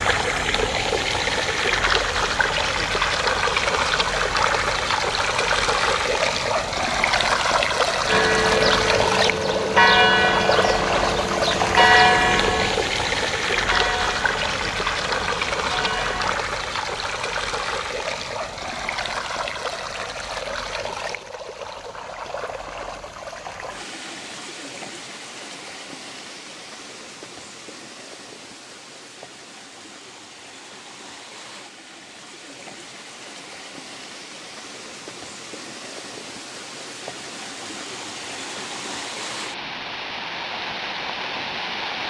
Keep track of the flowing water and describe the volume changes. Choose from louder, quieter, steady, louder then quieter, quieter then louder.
quieter then louder.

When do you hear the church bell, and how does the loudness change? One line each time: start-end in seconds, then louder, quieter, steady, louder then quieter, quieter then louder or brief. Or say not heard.
8.1-16.4 quieter.